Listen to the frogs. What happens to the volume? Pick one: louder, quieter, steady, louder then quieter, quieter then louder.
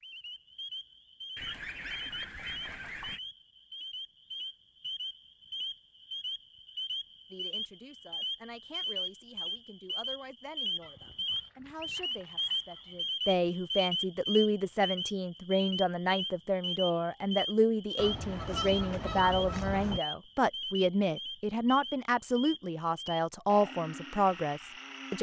louder then quieter.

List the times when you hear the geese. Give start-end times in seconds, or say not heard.
1.4-3.2, 10.8-13.2, 17.9-20.0.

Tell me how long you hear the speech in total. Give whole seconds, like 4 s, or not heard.
18 s.